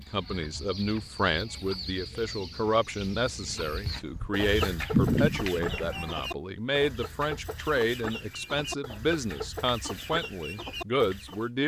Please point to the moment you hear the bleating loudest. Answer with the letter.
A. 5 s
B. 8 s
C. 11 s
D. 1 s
A.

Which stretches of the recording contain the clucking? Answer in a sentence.
The clucking can be heard from 0.0 to 11.5 s.